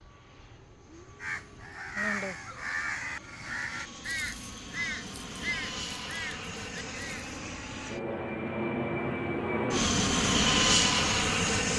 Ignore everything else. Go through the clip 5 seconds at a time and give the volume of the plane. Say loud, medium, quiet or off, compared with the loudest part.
quiet, medium, loud.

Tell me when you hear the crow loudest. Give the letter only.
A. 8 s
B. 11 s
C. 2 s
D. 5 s
C.